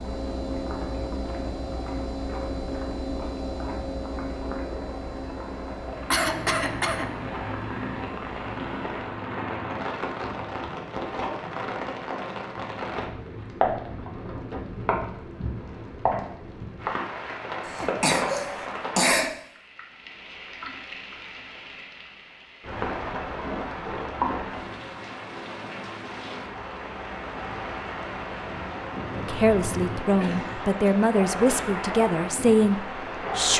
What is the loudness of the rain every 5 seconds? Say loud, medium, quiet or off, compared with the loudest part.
medium, loud, loud, loud, loud, loud, loud.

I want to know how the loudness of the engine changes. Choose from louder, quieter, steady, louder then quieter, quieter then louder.
quieter.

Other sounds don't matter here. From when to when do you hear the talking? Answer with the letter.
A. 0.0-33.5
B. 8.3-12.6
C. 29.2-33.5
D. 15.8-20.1
C.